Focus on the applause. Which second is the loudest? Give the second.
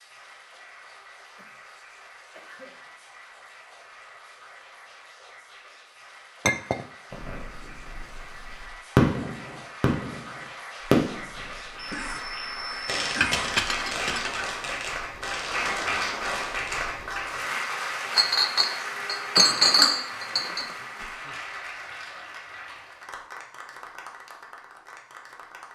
16 s.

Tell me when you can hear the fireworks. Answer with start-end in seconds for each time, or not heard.
7.1-16.8.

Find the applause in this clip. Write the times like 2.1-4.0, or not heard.
0.0-25.6.